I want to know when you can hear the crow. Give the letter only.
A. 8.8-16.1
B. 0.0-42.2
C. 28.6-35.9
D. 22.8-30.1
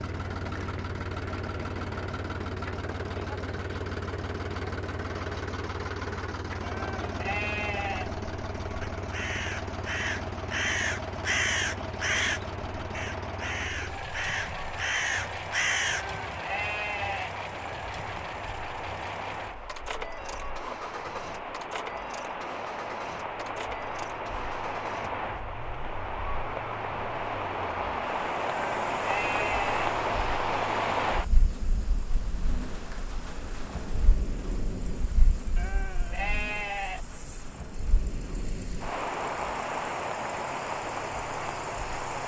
A.